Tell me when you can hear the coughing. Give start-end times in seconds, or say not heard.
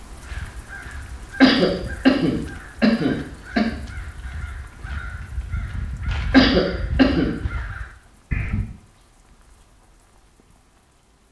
1.4-3.6, 6.3-7.3.